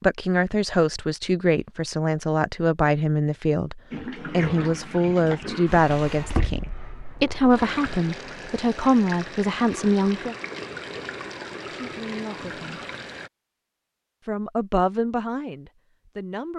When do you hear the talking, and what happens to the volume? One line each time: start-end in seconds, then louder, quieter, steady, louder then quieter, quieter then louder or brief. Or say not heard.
0.0-10.3 steady
11.7-12.8 brief
14.2-16.5 brief.